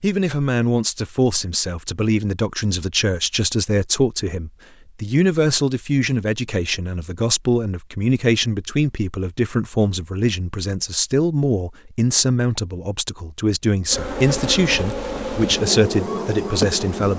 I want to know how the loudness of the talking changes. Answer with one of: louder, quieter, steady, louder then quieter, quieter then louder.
steady.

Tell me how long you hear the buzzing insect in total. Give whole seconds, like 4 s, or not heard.
3 s.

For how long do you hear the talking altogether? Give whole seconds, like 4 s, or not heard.
17 s.